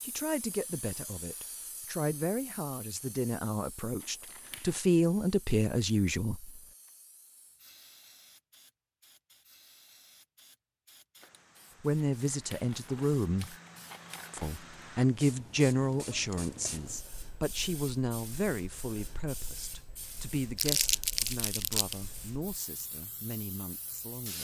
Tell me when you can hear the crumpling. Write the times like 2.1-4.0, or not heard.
4.0-4.8, 12.2-14.5, 20.6-21.9.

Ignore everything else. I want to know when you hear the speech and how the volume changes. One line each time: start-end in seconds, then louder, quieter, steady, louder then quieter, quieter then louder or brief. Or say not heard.
0.0-6.5 louder
11.8-13.6 brief
14.3-24.3 quieter.